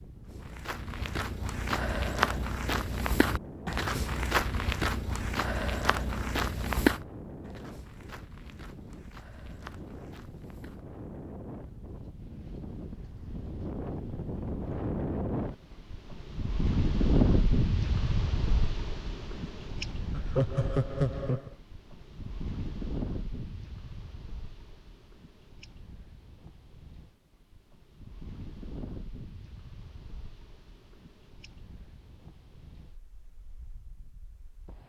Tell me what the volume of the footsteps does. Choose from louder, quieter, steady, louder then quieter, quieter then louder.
quieter.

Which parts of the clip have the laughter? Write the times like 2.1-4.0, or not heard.
20.1-21.6.